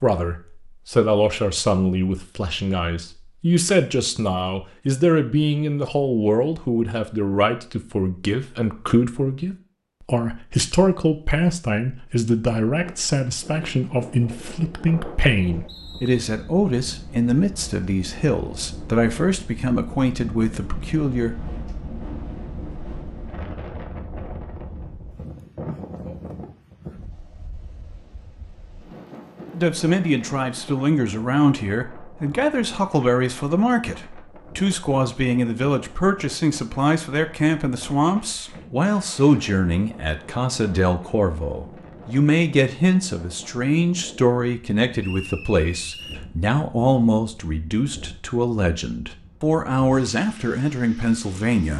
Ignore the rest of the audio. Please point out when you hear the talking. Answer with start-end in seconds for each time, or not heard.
0.0-21.6, 29.5-51.7.